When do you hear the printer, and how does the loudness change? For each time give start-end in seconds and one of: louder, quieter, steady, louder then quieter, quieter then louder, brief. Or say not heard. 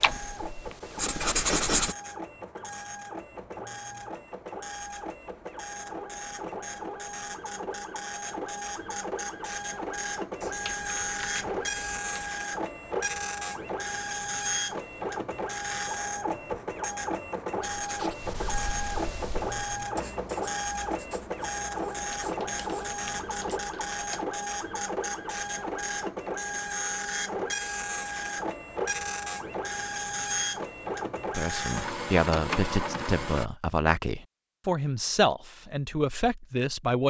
0.0-33.5 louder.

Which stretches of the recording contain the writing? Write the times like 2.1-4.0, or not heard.
0.0-1.9, 17.6-23.6.